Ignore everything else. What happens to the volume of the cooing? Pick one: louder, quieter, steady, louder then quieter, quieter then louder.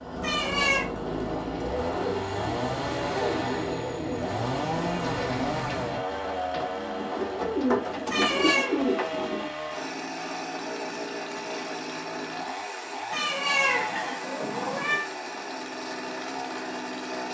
louder.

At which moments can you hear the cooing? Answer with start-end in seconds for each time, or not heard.
1.0-9.6.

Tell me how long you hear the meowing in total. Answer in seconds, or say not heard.
3 s.